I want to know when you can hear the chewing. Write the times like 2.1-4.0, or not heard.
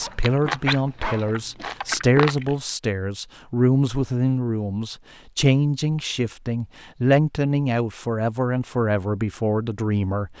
0.0-2.5.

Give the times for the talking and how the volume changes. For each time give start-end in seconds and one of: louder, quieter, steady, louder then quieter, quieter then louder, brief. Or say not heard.
0.0-10.3 steady.